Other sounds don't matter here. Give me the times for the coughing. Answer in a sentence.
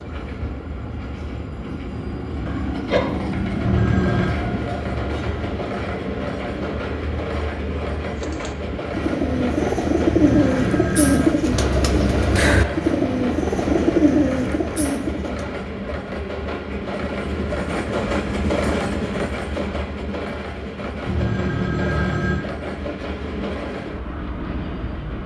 The coughing can be heard from 2.5 to 3.1 s.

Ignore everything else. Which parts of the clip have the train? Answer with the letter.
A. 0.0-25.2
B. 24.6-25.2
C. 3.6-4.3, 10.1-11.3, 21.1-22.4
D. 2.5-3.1
A.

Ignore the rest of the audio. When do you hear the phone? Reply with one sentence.
You can hear the phone from 3.6 to 4.3 s, from 10.1 to 11.3 s and from 21.1 to 22.4 s.